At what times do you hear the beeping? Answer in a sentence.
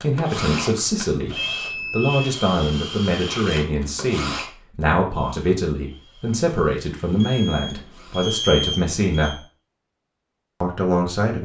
You can hear the beeping from 0.8 to 2.2 s and from 7.2 to 9.3 s.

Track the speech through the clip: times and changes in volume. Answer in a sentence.
You can hear the speech from 0.0 to 9.4 s, at a steady volume; and briefly from 10.6 to 11.4 s.